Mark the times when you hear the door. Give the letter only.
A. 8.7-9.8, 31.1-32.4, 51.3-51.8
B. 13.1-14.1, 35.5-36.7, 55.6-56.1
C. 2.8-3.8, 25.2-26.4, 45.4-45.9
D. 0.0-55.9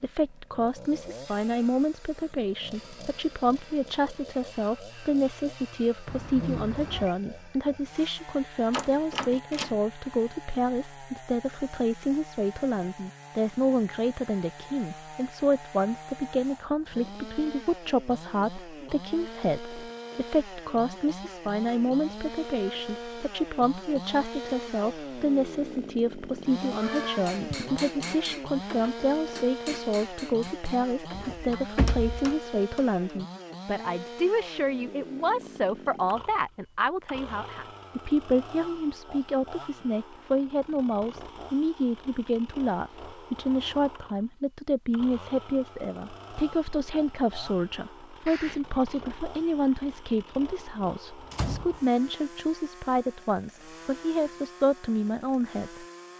A.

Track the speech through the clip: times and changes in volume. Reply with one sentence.
You can hear the speech from 0.0 to 55.9 s, at a steady volume.